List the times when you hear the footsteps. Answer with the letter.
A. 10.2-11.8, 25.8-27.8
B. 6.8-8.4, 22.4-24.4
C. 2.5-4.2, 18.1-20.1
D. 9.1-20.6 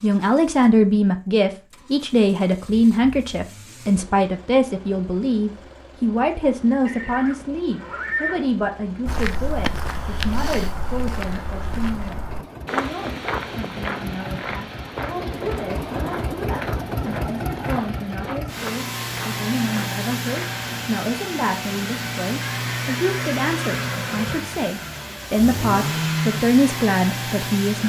D.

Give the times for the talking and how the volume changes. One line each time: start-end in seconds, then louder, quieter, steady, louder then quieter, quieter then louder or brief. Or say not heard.
0.0-27.8 quieter then louder.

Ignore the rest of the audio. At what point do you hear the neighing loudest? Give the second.
8 s.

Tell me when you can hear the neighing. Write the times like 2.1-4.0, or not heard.
6.8-8.4, 22.4-24.4.